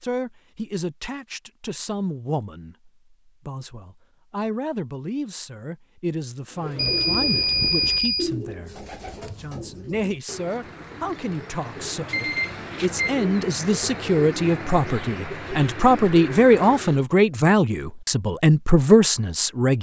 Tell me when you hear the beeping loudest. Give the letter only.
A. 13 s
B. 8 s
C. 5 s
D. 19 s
B.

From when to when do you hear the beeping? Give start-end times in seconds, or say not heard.
6.8-8.3, 12.1-13.2.